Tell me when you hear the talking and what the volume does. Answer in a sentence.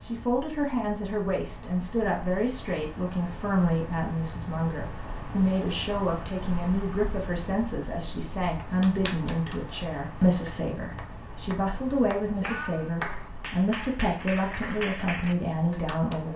You can hear the talking from 0.1 to 16.3 s, at a steady volume.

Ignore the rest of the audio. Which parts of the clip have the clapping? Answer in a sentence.
The clapping can be heard from 8.7 to 16.2 s.